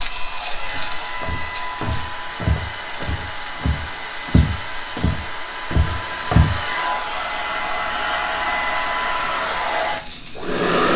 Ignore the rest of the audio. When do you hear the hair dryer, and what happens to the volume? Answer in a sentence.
The hair dryer can be heard from 0.0 to 10.9 s, getting louder.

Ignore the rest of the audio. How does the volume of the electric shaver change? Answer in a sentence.
The loudness of the electric shaver goes down.